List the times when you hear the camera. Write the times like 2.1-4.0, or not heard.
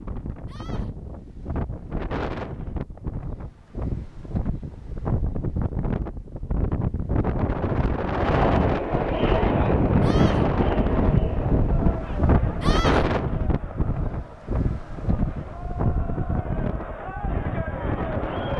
not heard.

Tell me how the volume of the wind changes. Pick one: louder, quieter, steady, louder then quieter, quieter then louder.
louder then quieter.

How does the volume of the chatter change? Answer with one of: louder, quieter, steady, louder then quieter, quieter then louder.
quieter then louder.